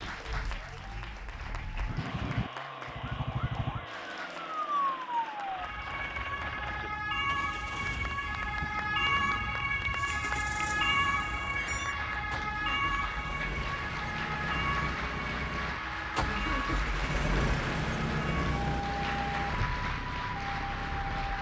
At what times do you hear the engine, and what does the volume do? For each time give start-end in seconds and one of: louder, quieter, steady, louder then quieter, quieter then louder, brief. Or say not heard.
1.8-21.3 louder.